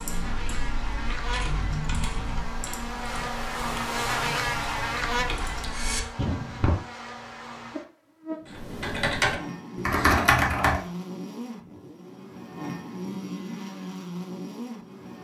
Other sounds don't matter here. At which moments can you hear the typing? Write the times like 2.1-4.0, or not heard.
0.0-6.8, 8.4-10.9.